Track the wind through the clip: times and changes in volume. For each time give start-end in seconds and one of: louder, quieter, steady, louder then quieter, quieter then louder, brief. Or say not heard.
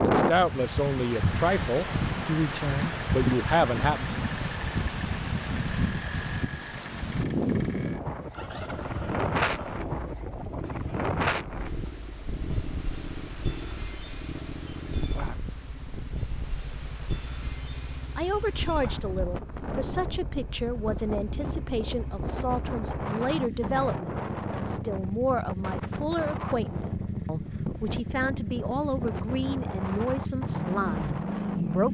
0.0-31.9 quieter.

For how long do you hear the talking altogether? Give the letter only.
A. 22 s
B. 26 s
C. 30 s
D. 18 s
D.